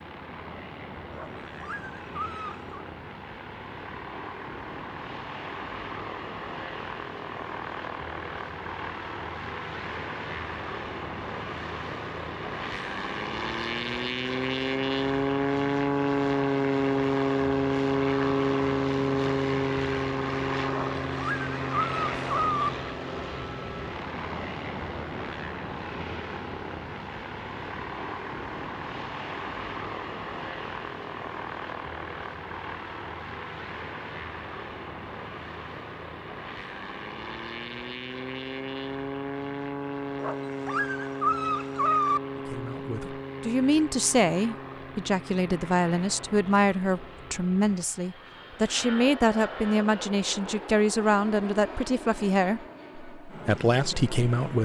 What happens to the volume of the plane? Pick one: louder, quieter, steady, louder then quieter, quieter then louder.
louder then quieter.